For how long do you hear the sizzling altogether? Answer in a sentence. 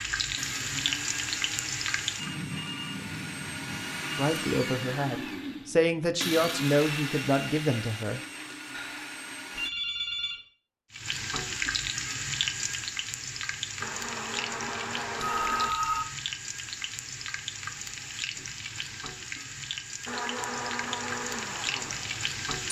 The sizzling can be heard for 14 seconds in total.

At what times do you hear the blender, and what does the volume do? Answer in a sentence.
The blender can be heard from 0.3 to 9.7 s, getting louder then quieter; briefly from 13.8 to 15.7 s; and briefly from 20.1 to 22.6 s.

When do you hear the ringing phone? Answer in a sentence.
The ringing phone can be heard from 2.1 to 5.0 s, from 8.7 to 10.3 s and from 15.2 to 16.1 s.